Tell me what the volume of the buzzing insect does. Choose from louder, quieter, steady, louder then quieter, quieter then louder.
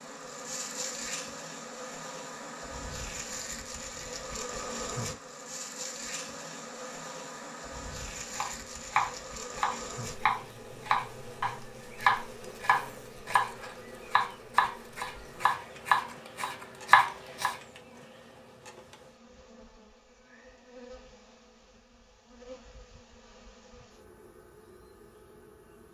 quieter.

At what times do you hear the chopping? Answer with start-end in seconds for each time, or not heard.
8.3-17.6.